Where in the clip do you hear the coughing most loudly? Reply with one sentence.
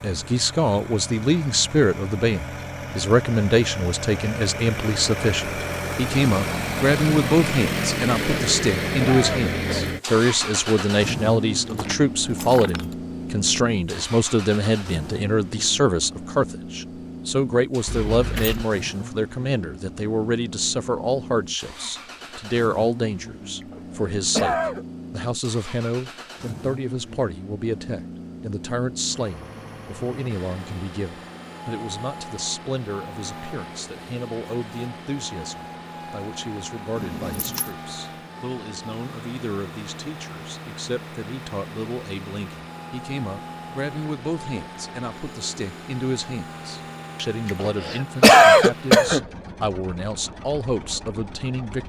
The volume of the coughing peaks at 48 seconds.